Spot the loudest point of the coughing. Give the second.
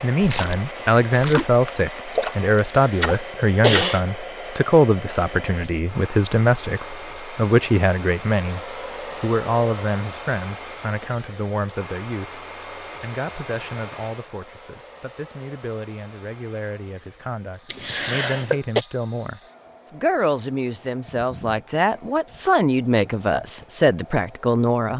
4 s.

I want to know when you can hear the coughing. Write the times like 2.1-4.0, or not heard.
2.5-4.0, 17.7-18.9.